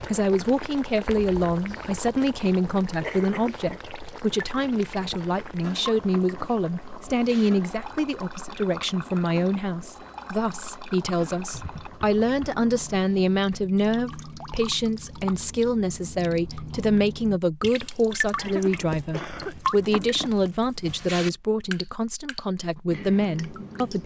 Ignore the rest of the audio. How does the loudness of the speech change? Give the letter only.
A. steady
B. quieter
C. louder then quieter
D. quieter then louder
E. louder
A.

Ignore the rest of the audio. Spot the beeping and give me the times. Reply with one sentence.
The beeping can't be heard in this clip.